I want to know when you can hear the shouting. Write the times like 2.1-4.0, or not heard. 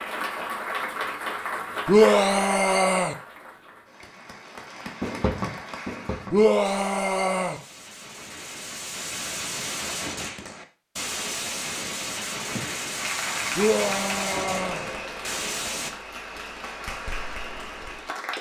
1.9-3.1, 6.3-7.6, 13.6-14.8.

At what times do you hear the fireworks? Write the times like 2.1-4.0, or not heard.
5.0-15.9.